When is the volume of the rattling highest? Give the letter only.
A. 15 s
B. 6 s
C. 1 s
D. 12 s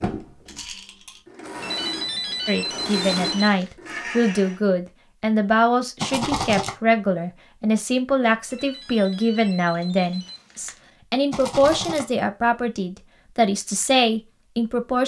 B.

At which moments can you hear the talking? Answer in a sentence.
You can hear the talking from 2.5 to 15.0 s.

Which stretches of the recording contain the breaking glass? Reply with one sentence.
The breaking glass can't be heard in this clip.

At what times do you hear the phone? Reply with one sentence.
The phone can be heard from 1.6 to 3.7 s and from 8.5 to 10.8 s.